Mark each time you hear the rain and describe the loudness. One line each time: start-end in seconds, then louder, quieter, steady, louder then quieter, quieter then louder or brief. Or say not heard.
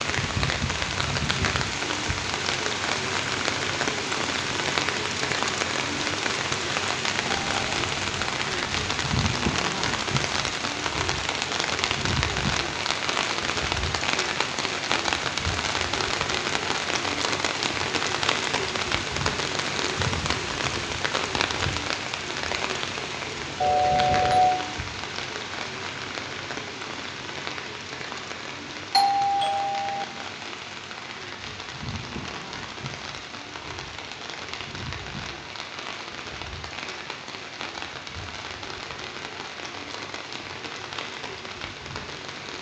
0.0-42.5 quieter.